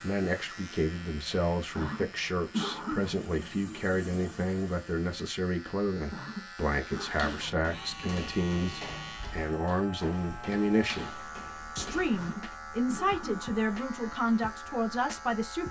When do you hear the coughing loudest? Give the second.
3 s.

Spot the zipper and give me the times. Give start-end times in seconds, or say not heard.
not heard.